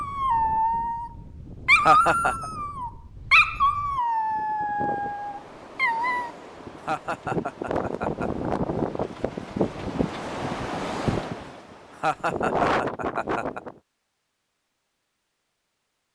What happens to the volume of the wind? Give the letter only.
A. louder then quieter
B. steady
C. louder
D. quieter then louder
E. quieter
C.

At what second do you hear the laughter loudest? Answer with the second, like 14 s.
2 s.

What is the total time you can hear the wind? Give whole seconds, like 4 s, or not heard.
14 s.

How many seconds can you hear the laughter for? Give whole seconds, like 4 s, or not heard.
4 s.